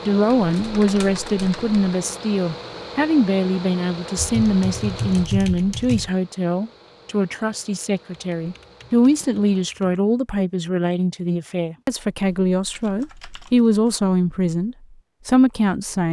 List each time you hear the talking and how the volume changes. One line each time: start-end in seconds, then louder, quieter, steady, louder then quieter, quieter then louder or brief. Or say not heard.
0.1-16.0 steady.